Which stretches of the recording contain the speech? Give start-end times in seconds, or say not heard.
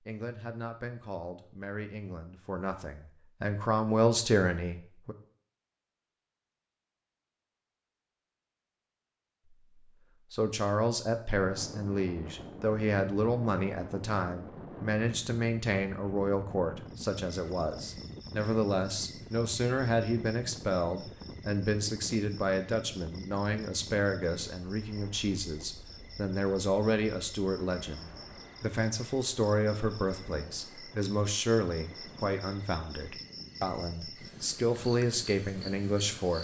0.0-5.2, 10.3-36.3.